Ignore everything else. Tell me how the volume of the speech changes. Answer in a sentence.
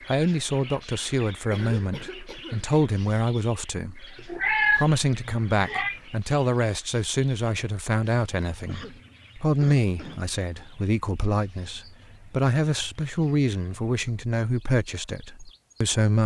The loudness of the speech stays about the same.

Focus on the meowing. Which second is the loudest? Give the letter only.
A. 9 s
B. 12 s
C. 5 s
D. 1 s
C.